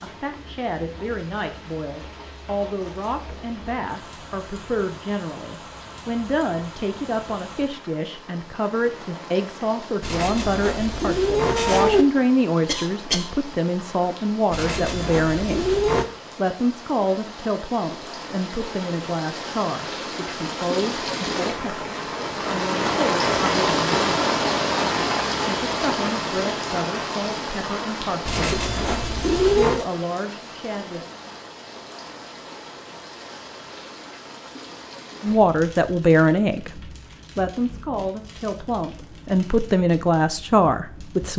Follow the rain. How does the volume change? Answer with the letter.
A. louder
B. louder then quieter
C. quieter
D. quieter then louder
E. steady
B.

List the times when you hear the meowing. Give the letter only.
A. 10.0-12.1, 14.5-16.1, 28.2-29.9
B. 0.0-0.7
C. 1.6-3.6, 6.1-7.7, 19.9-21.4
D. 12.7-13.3
A.